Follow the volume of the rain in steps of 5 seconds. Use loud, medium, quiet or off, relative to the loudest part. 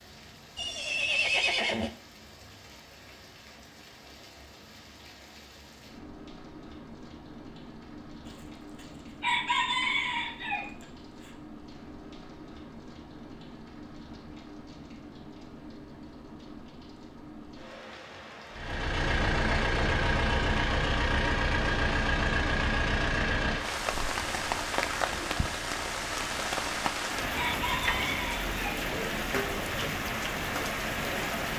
quiet, quiet, quiet, quiet, loud, loud, loud.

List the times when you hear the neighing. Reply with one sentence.
You can hear the neighing from 0.6 to 1.9 s.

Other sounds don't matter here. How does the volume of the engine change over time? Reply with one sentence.
The loudness of the engine goes down.